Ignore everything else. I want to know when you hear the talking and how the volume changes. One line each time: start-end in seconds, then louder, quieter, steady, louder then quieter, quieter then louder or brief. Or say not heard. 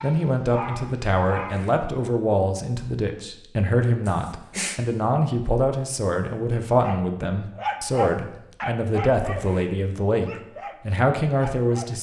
0.0-11.9 steady.